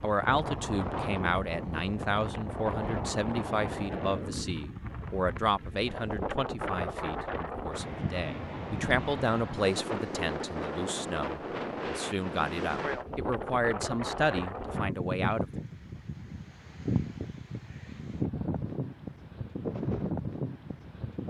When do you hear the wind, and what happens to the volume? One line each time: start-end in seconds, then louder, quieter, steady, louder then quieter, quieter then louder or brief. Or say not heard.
0.0-21.2 steady.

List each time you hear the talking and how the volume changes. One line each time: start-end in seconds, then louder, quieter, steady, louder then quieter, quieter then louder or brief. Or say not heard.
0.0-15.6 steady.